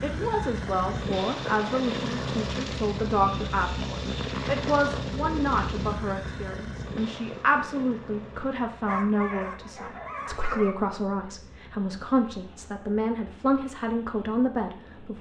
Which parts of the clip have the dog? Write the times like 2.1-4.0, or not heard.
8.8-10.8.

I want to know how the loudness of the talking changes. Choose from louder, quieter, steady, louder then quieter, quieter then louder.
steady.